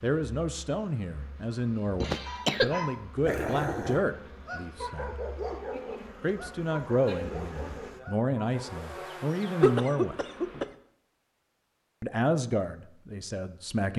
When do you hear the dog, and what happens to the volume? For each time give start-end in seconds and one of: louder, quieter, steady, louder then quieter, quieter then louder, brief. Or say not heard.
2.2-9.1 quieter.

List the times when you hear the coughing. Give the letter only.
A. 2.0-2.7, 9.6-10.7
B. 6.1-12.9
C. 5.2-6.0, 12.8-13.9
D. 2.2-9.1
A.